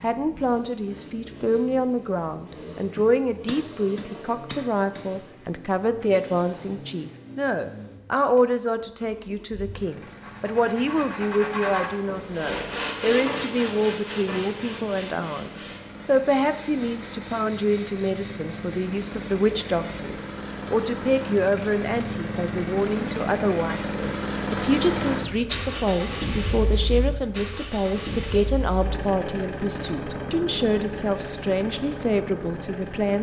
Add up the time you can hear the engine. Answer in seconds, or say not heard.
33 s.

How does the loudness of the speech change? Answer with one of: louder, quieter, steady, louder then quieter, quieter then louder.
steady.